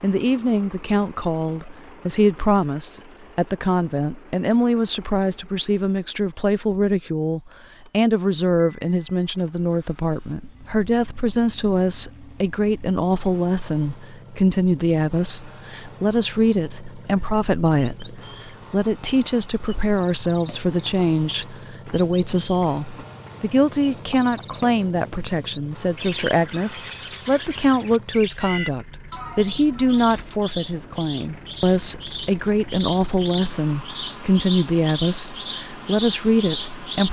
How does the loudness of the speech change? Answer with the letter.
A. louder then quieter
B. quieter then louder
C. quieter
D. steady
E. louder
D.